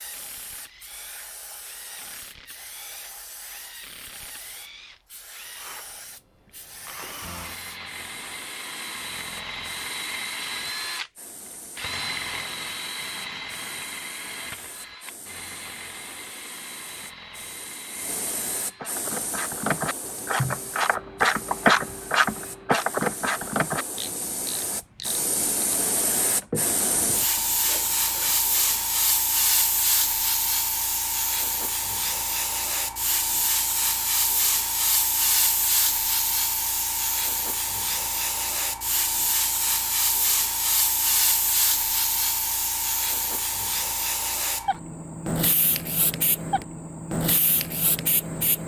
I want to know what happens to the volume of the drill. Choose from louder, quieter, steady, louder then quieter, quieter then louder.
louder then quieter.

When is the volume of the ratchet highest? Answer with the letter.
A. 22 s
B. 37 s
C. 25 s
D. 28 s
A.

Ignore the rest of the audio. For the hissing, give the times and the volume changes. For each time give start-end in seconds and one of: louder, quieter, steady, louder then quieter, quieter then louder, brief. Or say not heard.
0.0-48.6 louder.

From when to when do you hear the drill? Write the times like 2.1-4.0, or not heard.
0.0-18.9.